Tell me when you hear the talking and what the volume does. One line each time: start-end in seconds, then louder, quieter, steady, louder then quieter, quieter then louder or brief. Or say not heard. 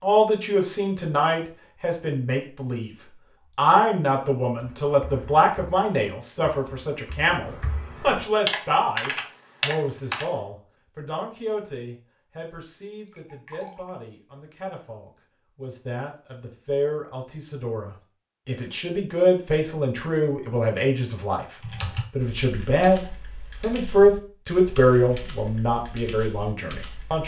0.0-2.9 brief
3.5-27.2 quieter then louder.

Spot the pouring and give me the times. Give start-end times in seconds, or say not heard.
12.9-13.9.